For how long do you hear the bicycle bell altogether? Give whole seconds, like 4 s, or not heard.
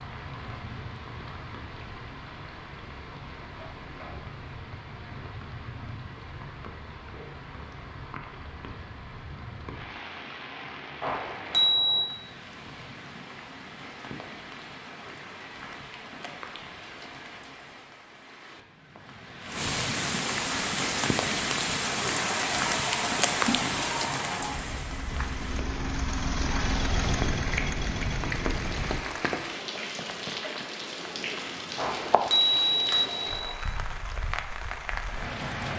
3 s.